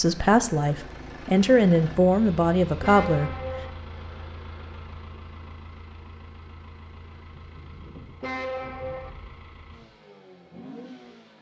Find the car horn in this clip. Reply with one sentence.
You can hear the car horn from 2.8 to 3.7 s and from 8.2 to 9.1 s.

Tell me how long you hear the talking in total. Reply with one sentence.
You can hear the talking for 3 seconds altogether.